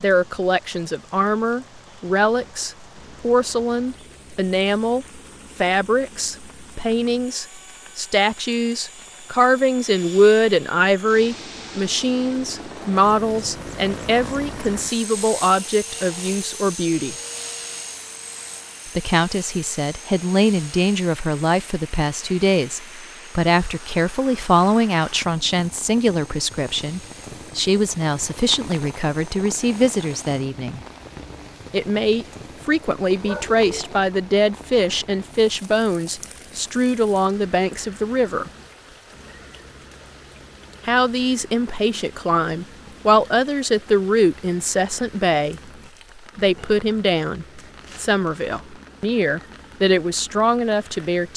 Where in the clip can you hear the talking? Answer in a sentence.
You can hear the talking from 0.0 to 17.1 s, from 18.9 to 30.8 s, from 31.7 to 38.5 s and from 40.9 to 51.3 s.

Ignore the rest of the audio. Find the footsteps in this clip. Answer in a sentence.
You can't hear the footsteps here.